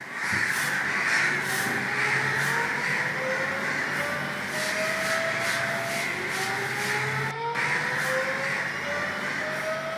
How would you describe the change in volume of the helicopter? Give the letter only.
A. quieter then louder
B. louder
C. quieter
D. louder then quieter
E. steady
E.